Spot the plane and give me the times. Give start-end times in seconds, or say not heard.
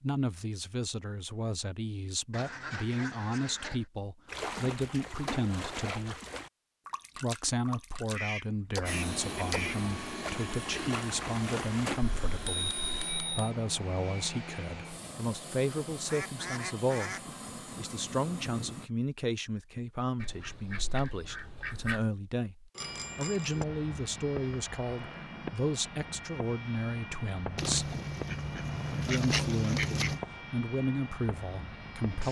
8.8-18.9, 22.8-32.2.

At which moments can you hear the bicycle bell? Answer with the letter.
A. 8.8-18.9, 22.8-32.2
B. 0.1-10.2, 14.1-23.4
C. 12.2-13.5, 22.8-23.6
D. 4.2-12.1
C.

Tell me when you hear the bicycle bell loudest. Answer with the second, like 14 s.
13 s.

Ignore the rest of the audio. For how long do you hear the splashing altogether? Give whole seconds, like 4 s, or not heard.
8 s.